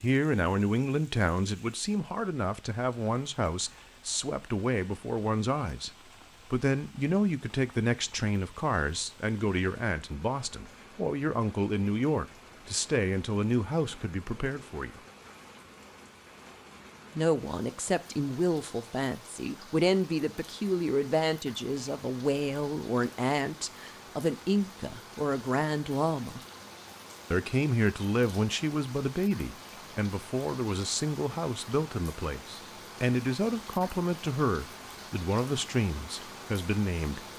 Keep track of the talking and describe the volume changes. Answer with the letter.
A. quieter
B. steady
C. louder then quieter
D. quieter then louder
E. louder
B.